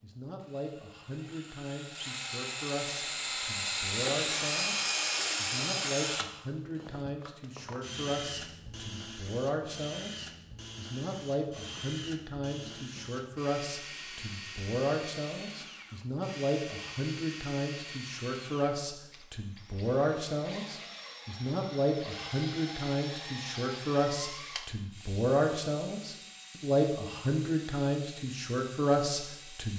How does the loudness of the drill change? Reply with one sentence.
The loudness of the drill goes down.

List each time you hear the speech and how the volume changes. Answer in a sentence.
You can hear the speech from 0.0 to 29.7 s, getting louder.